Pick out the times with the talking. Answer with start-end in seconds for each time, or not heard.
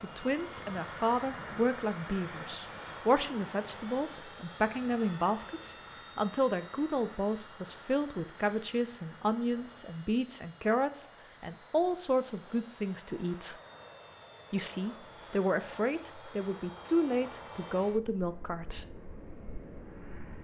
0.0-13.6, 14.5-18.9.